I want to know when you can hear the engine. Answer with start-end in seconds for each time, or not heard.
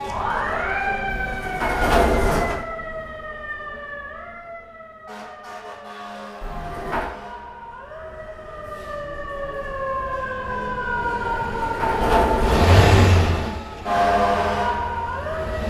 12.3-15.6.